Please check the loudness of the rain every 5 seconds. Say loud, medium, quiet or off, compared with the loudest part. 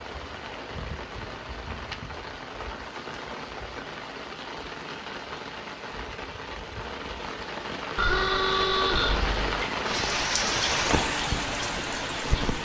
medium, medium, loud.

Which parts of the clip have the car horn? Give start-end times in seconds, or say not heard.
8.0-9.5.